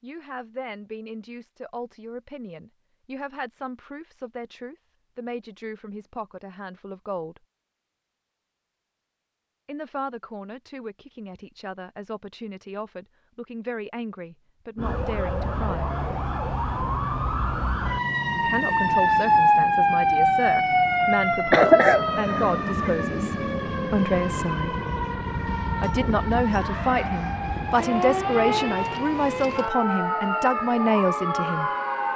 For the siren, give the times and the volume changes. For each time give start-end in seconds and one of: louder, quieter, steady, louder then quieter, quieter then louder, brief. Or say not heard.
14.8-32.1 louder then quieter.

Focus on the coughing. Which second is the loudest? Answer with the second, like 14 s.
22 s.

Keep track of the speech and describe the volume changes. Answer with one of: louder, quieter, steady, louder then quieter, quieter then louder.
louder.